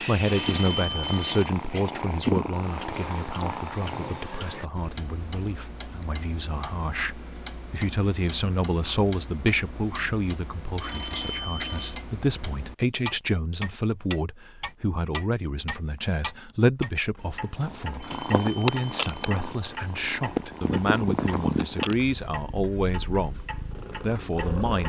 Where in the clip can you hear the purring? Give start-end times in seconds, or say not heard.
0.0-4.2, 17.6-24.8.